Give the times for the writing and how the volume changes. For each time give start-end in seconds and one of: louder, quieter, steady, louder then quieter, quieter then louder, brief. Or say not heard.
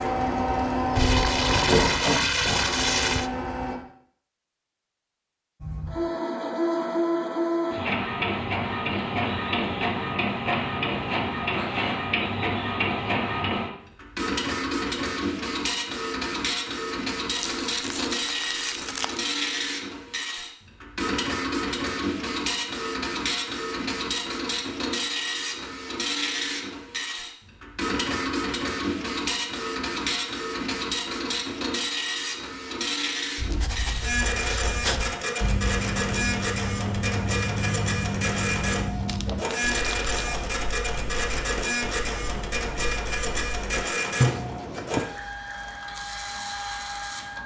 33.4-45.0 quieter then louder.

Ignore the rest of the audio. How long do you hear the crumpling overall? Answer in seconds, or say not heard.
6 s.